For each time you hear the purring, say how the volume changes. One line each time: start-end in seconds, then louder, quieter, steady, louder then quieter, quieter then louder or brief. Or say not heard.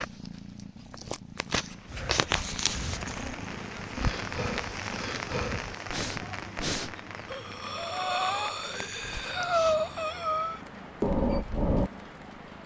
0.0-12.6 quieter.